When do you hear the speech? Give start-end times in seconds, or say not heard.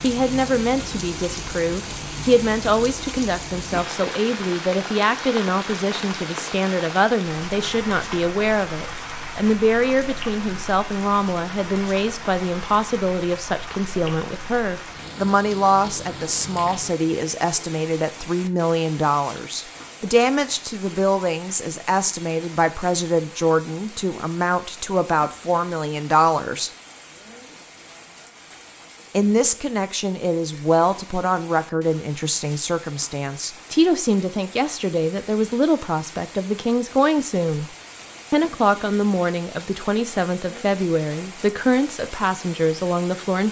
0.0-26.7, 29.1-37.7, 38.3-43.4.